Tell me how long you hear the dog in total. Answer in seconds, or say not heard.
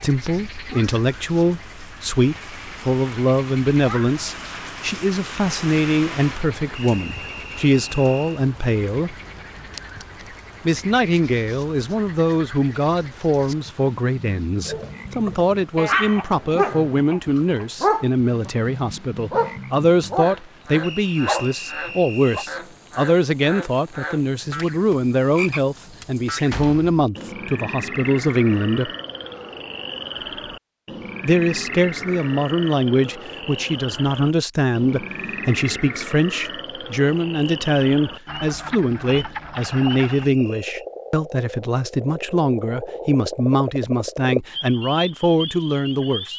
7 s.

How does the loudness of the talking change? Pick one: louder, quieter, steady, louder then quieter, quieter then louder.
steady.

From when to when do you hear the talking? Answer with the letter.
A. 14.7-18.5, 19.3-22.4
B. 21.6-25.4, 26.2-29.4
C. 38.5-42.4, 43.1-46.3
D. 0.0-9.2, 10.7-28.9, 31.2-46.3
D.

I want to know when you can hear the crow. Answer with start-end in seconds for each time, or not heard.
not heard.